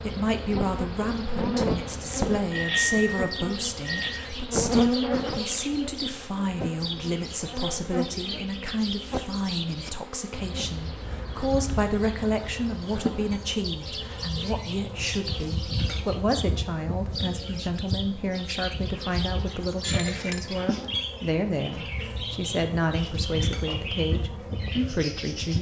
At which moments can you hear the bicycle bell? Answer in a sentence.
You can hear the bicycle bell from 2.5 to 4.1 s and from 19.8 to 20.4 s.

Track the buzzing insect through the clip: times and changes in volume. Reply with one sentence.
The buzzing insect can be heard from 0.0 to 25.5 s, getting quieter.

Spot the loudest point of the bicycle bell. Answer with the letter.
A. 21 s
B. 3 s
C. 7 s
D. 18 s
B.